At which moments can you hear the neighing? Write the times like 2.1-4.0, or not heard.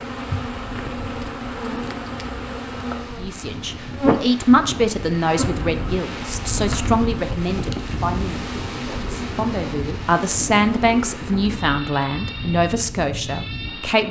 not heard.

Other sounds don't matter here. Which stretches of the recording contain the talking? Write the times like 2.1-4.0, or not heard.
3.1-14.0.